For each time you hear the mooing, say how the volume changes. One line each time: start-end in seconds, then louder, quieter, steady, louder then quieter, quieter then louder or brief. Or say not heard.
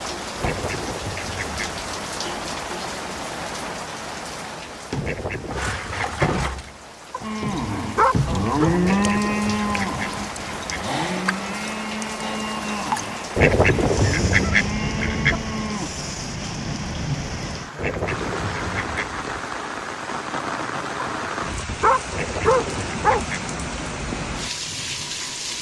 7.2-15.9 quieter.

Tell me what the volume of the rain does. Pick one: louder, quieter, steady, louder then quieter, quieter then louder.
steady.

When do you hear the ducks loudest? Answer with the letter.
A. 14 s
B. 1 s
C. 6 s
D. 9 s
A.